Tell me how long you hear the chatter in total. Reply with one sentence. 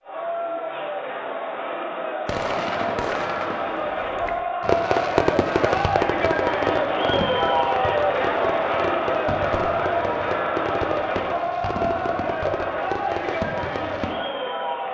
You can hear the chatter for 15 seconds altogether.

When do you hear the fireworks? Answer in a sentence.
You can hear the fireworks from 2.2 to 14.2 s.